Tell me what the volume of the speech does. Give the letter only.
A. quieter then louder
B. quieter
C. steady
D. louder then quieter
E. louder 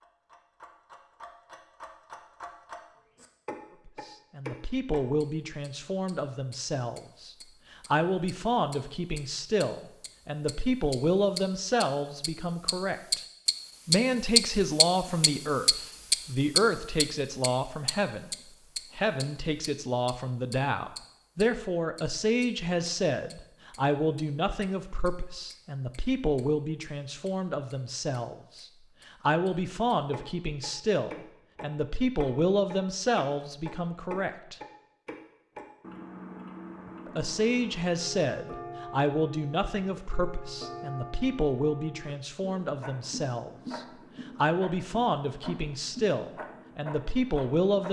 C.